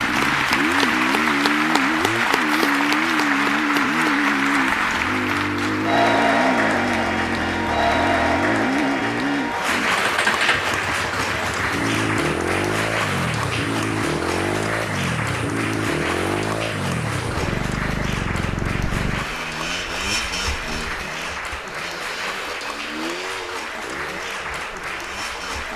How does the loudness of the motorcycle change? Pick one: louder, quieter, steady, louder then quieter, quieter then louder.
quieter.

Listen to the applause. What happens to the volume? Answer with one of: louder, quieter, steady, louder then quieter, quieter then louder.
quieter.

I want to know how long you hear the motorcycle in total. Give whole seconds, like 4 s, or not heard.
26 s.